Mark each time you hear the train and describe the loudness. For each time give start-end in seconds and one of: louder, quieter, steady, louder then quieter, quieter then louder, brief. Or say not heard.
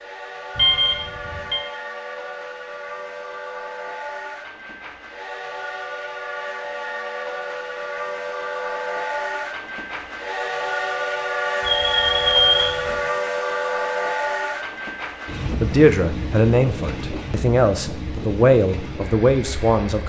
0.0-20.0 louder then quieter.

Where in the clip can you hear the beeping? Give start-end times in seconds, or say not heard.
0.6-1.6, 11.6-13.0.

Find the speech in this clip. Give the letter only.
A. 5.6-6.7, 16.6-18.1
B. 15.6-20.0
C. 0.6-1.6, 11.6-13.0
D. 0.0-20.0
B.